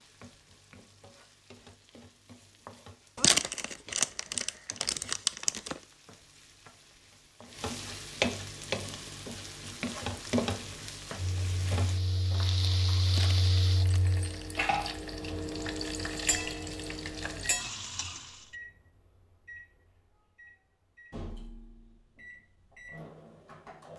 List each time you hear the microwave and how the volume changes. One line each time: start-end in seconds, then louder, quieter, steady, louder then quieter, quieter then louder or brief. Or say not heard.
11.2-23.9 quieter then louder.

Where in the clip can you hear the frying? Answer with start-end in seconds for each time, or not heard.
0.0-18.4.